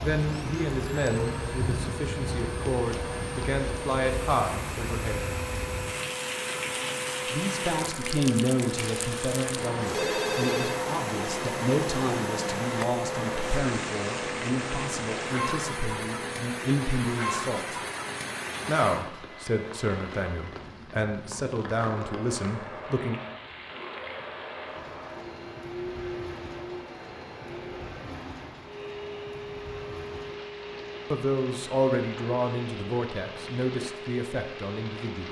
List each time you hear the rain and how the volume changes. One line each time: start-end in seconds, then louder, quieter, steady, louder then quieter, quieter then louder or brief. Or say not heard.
0.0-35.2 quieter.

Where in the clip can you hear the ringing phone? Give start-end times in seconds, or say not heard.
8.8-10.8.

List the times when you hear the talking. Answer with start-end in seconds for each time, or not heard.
0.0-5.2, 7.3-17.8, 18.6-23.2, 31.1-35.2.